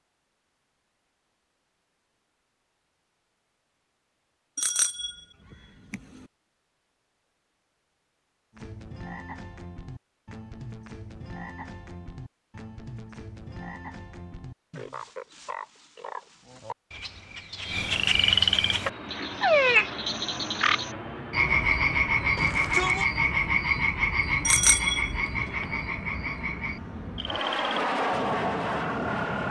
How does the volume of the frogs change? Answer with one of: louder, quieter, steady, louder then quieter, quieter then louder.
louder then quieter.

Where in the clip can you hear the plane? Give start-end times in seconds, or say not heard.
18.6-29.4.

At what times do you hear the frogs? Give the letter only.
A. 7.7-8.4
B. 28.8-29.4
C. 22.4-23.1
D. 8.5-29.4
D.